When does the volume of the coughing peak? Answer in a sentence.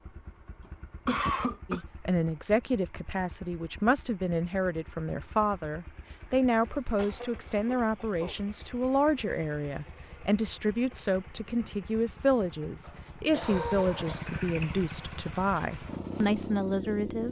The loudest moment of the coughing is at 1 second.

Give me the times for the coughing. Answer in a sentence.
The coughing can be heard from 0.6 to 1.8 s, from 7.0 to 8.3 s and from 12.8 to 14.4 s.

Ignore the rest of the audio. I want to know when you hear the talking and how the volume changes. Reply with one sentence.
The talking can be heard from 1.7 to 17.2 s, at a steady volume.